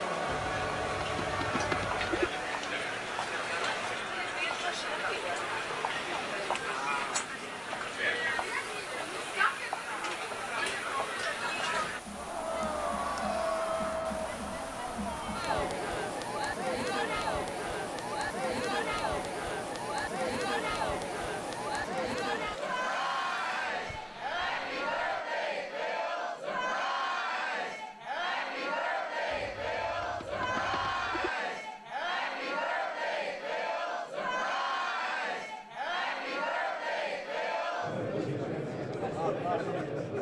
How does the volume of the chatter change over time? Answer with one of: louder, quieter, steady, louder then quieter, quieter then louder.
steady.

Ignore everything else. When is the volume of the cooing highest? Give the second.
2 s.